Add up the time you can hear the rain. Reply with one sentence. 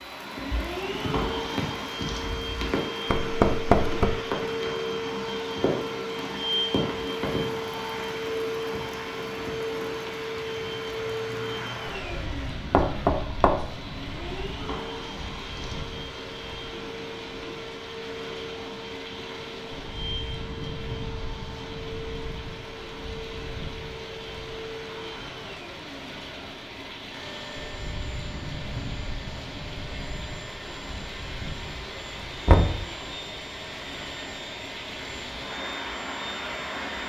You can hear the rain for 37 seconds altogether.